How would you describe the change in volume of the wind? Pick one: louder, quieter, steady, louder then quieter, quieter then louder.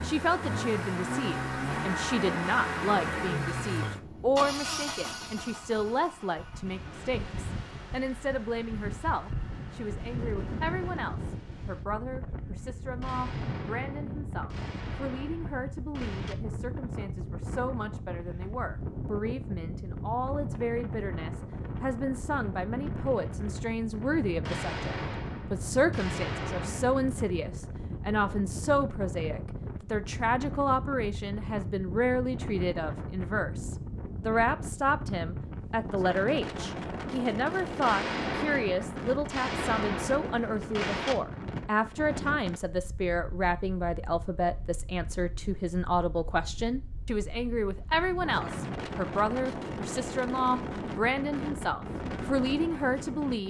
steady.